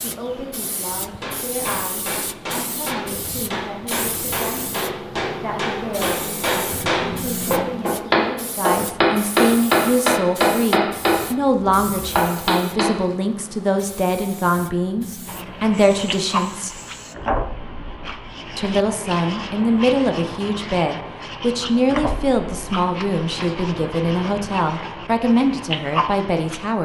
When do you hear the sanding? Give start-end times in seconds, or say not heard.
15.2-26.8.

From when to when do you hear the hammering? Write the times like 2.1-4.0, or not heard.
1.1-12.9.